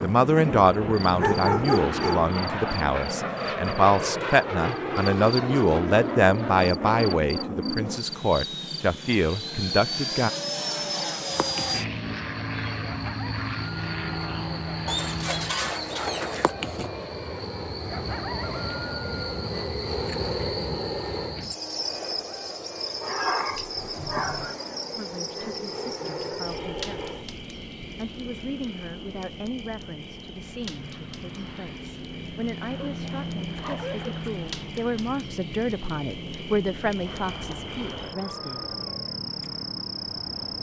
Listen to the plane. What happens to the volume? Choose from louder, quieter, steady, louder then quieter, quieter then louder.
quieter.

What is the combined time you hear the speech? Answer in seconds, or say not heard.
23 s.